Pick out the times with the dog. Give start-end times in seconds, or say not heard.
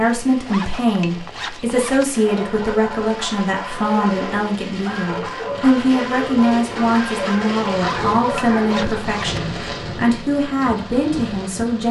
2.1-9.0.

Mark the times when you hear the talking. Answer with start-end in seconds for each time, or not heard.
0.0-11.8.